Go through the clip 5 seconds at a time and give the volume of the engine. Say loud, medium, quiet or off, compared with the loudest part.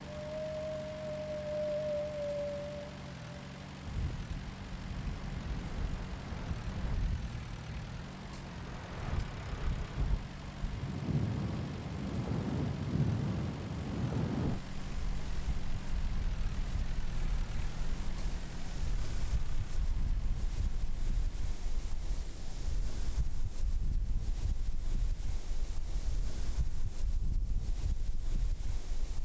loud, loud, loud, loud, medium, off.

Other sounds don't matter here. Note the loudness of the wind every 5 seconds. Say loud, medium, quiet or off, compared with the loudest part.
loud, medium, loud, quiet, quiet, quiet.